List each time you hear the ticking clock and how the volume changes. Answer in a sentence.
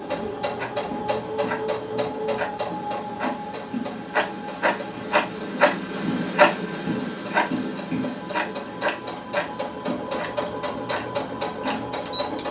You can hear the ticking clock from 0.0 to 12.4 s, getting louder then quieter.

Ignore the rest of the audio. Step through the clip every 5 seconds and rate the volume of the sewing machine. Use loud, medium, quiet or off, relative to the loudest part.
loud, medium, loud.